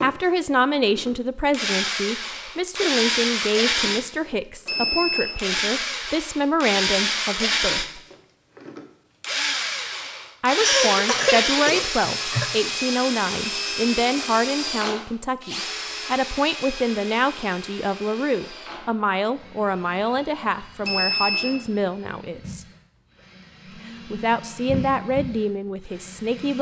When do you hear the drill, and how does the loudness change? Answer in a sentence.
The drill can be heard from 0.0 to 26.5 s, getting quieter.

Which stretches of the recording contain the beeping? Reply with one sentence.
The beeping can be heard from 4.7 to 5.4 s, from 13.4 to 14.1 s and from 20.8 to 21.6 s.